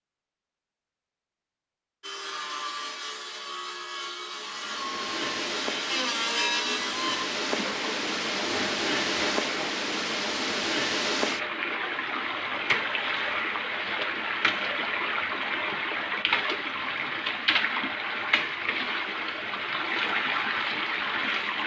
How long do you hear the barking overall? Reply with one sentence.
You can't hear the barking here.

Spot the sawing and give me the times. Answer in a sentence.
You can hear the sawing from 2.0 to 9.7 s.